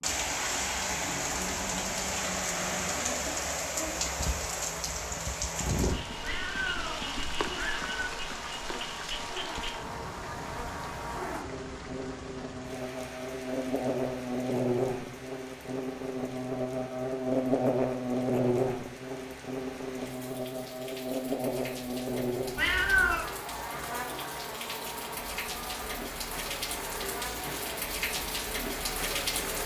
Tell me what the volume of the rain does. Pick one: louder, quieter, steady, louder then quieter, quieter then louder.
quieter then louder.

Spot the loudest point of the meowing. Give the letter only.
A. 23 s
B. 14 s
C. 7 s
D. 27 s
A.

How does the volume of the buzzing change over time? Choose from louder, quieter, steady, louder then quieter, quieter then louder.
louder then quieter.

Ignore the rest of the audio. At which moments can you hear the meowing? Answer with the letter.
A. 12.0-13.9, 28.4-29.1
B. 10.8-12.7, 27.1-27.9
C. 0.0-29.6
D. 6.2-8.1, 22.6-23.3
D.